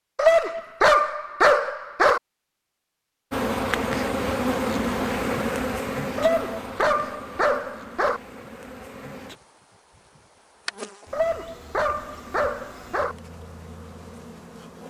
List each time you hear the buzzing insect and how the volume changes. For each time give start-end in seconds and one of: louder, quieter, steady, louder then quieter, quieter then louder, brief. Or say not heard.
3.3-14.8 quieter.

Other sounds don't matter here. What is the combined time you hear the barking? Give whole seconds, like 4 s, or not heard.
6 s.